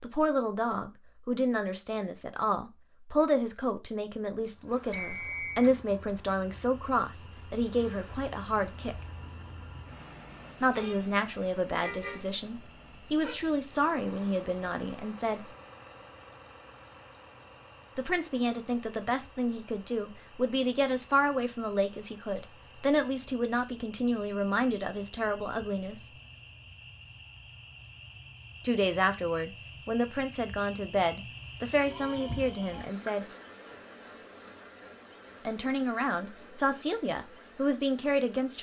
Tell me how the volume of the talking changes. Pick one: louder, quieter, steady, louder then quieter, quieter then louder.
steady.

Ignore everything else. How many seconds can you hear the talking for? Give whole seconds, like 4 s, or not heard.
30 s.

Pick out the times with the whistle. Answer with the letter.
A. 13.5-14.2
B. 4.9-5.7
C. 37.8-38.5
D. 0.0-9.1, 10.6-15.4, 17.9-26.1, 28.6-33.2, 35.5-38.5
B.